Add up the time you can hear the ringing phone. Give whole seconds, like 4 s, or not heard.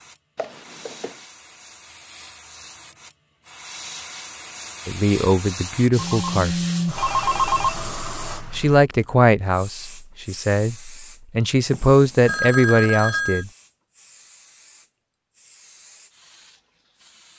4 s.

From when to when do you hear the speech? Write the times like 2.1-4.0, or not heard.
4.8-6.5, 8.6-13.5.